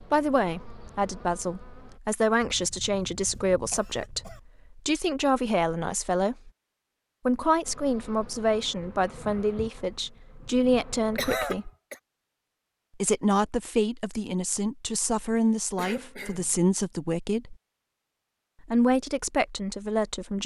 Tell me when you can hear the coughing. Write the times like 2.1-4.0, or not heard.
2.4-4.4, 11.2-12.0, 15.8-16.6.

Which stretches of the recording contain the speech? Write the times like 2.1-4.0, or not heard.
0.1-6.5, 7.2-11.7, 13.0-17.6, 18.6-20.4.